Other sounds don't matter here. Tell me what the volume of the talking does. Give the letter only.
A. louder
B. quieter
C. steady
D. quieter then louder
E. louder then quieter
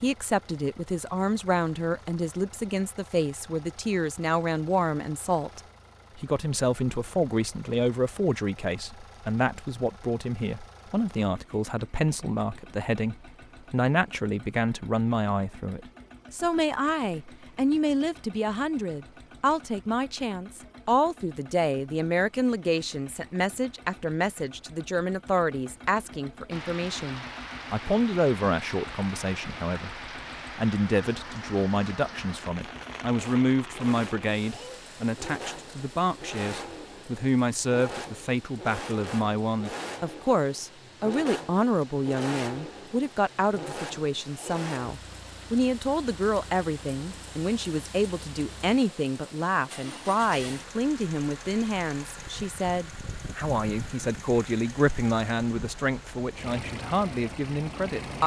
C.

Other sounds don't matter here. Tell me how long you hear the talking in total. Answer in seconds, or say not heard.
58 s.